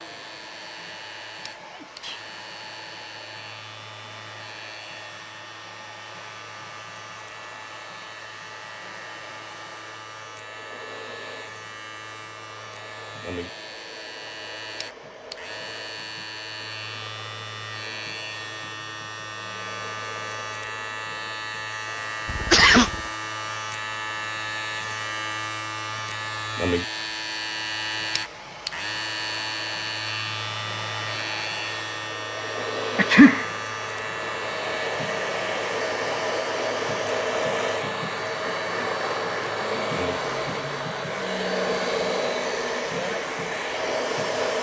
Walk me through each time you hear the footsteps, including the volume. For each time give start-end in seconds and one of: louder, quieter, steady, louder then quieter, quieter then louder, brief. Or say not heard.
not heard.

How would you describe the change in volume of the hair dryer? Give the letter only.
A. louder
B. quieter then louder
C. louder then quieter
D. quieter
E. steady
A.